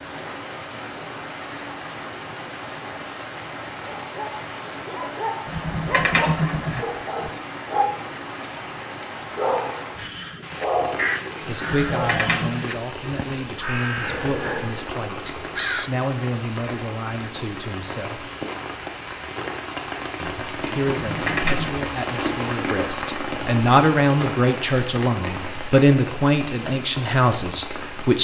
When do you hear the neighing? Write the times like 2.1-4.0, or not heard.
5.5-7.3, 11.7-12.7, 20.9-21.7.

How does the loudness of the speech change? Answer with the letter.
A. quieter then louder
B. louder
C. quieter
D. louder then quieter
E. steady
B.